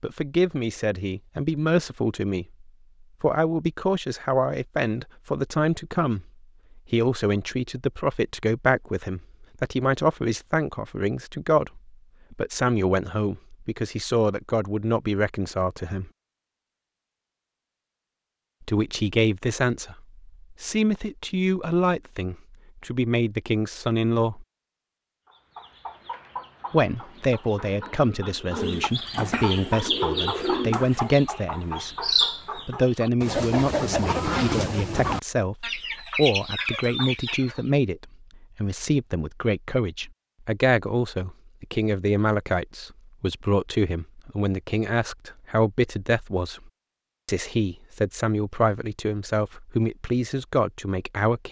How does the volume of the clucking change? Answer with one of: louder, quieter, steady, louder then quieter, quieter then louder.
louder.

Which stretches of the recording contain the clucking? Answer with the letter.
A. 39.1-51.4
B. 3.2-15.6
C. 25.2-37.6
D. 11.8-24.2
C.